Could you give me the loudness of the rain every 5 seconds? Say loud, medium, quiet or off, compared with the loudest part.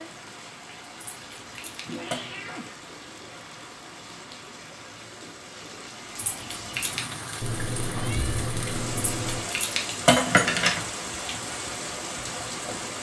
medium, loud, loud.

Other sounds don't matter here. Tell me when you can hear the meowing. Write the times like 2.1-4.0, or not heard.
1.9-2.8, 7.4-9.4.